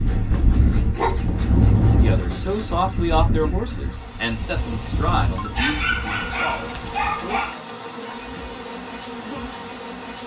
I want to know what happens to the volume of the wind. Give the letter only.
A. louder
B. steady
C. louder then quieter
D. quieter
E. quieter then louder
D.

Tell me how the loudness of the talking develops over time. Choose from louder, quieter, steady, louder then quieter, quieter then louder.
quieter.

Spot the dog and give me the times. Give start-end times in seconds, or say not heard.
0.1-2.9, 5.3-7.6.